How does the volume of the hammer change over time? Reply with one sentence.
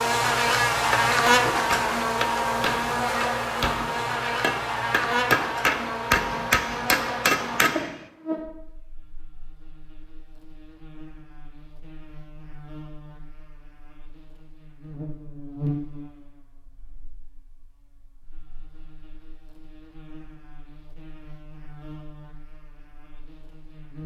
The volume of the hammer goes up.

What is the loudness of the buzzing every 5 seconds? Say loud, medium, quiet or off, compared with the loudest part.
loud, medium, quiet, quiet, quiet.